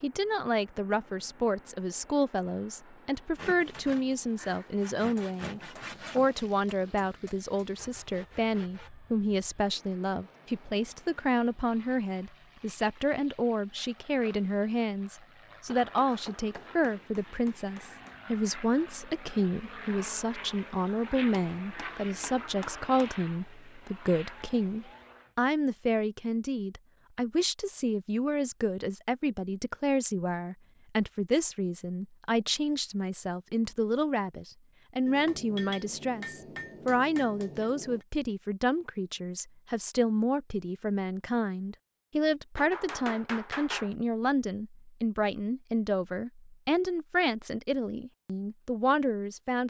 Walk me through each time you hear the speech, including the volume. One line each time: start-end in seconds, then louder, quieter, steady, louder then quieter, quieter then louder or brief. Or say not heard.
0.0-49.6 steady.